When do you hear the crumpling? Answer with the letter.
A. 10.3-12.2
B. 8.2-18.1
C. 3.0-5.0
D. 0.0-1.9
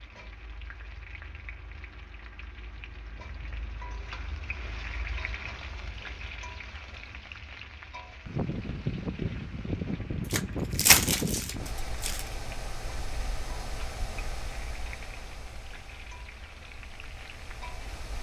A.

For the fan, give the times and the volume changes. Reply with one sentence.
The fan can be heard from 8.2 to 18.1 s, getting quieter.